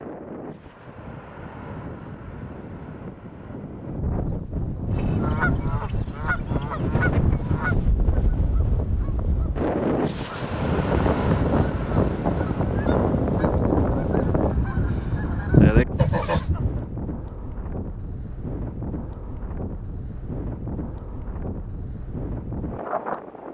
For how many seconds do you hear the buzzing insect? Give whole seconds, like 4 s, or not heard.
not heard.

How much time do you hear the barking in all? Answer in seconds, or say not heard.
not heard.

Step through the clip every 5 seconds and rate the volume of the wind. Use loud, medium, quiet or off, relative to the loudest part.
medium, loud, loud, medium, medium.